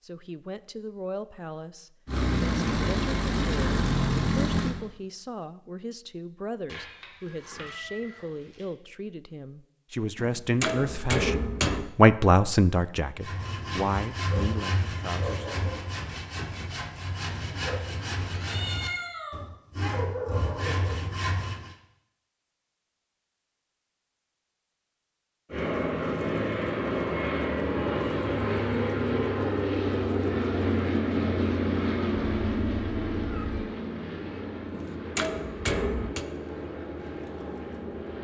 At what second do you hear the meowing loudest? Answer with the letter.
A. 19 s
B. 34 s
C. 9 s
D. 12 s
A.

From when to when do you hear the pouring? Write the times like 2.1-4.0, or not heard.
not heard.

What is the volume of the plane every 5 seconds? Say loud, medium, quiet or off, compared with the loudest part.
loud, off, off, off, off, loud, loud, medium.